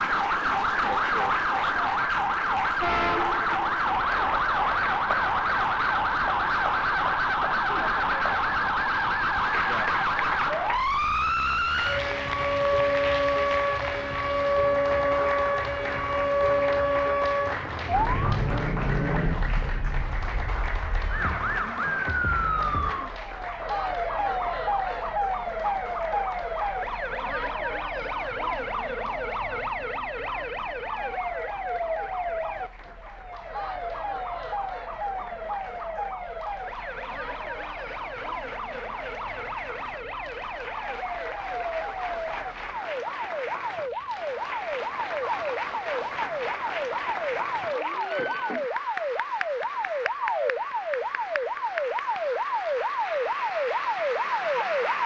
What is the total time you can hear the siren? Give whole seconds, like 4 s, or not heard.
55 s.